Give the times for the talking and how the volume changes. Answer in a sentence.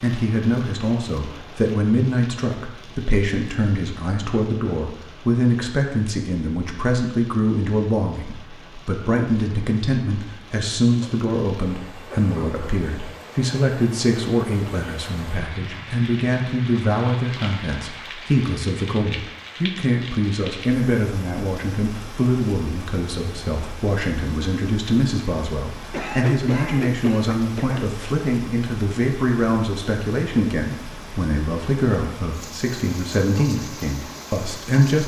The talking can be heard from 0.0 to 35.0 s, at a steady volume.